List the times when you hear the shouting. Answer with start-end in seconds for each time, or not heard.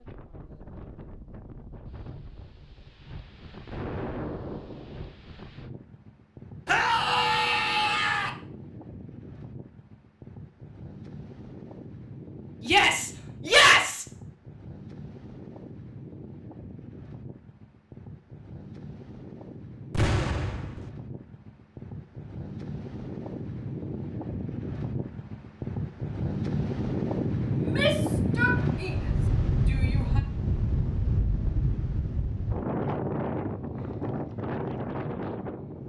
6.7-8.3, 12.7-14.1, 27.6-30.2.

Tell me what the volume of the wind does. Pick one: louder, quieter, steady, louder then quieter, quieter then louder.
louder.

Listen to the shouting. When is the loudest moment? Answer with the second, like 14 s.
14 s.